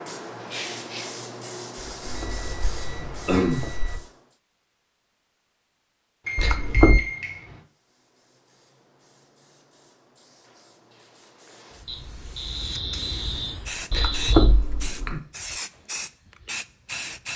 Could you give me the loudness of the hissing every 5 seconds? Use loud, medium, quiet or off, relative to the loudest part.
loud, quiet, medium, loud.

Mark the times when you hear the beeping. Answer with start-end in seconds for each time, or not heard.
2.0-4.0, 6.2-7.6, 11.8-14.5.